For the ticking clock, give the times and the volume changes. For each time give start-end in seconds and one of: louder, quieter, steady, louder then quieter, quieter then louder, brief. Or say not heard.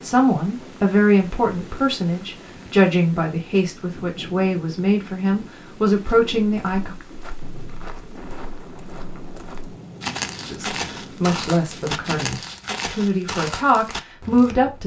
not heard.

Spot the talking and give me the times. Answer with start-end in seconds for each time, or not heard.
0.0-7.0, 10.5-14.8.